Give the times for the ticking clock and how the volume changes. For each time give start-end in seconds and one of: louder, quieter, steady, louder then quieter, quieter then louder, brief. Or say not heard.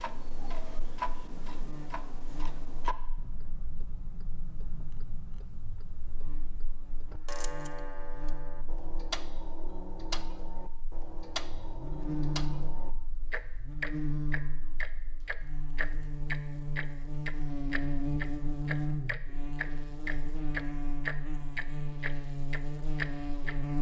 0.0-23.6 louder.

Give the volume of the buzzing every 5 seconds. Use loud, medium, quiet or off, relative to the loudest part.
quiet, quiet, loud, loud, loud.